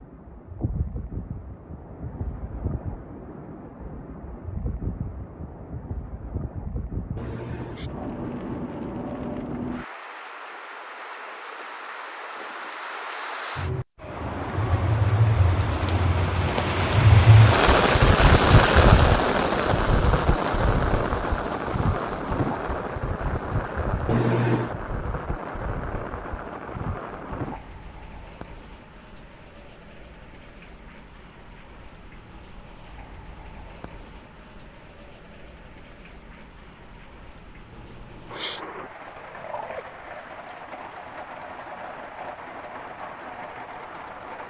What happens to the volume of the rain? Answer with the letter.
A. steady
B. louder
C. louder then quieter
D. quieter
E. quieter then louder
C.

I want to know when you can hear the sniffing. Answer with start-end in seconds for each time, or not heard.
7.2-7.9, 24.1-24.7, 37.7-38.6.